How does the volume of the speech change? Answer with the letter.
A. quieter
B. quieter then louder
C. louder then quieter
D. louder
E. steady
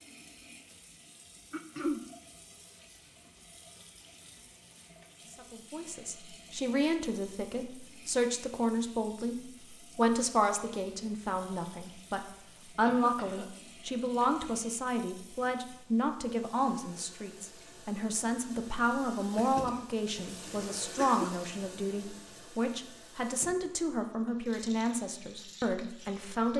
E.